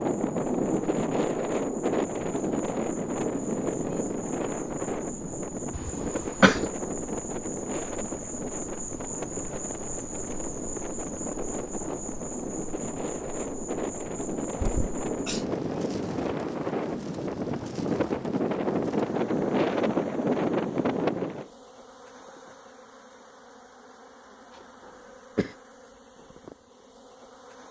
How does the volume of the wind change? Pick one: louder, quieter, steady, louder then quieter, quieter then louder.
quieter then louder.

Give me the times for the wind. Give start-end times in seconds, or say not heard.
0.0-21.4.